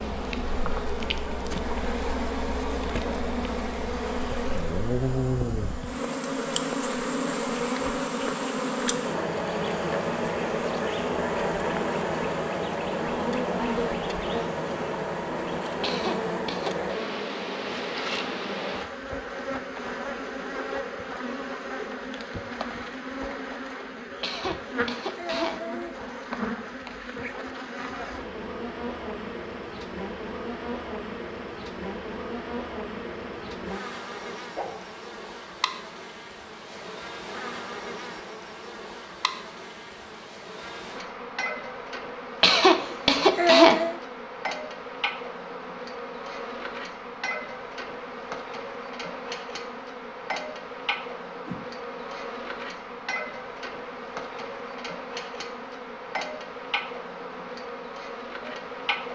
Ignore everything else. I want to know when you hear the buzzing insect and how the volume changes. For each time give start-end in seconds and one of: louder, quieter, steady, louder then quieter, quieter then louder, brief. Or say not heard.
0.0-59.1 quieter.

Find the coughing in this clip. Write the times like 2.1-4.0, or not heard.
15.8-16.9, 24.2-25.9, 42.4-44.0.